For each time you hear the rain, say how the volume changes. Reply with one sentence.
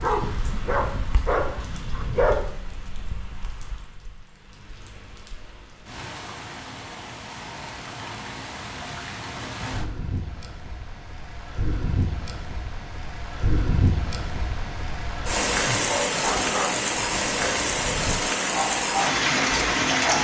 You can hear the rain from 0.0 to 20.1 s, getting louder.